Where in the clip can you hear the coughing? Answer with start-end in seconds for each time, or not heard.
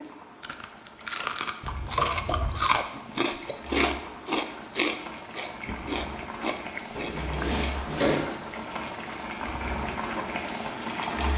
not heard.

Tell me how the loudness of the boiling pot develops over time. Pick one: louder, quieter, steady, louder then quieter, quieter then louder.
louder.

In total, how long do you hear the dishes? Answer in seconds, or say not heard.
not heard.